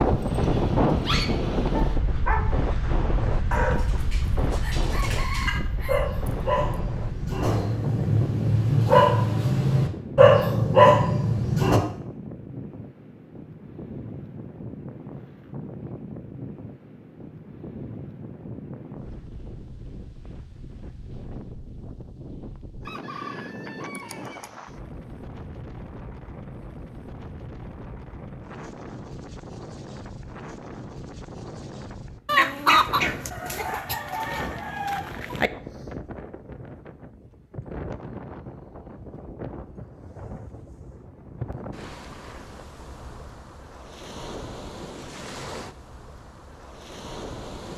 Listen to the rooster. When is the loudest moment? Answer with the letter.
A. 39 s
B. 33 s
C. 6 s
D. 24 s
B.